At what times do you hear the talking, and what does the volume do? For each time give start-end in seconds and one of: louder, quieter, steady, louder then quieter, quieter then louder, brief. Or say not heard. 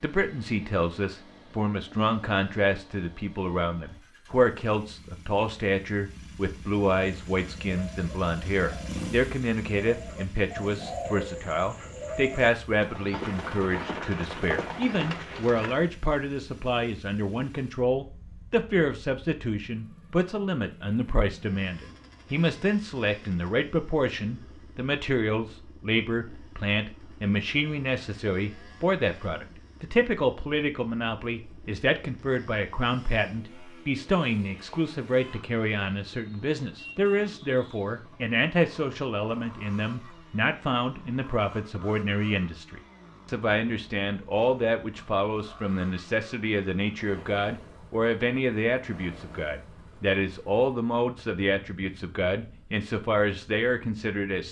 0.0-54.4 steady.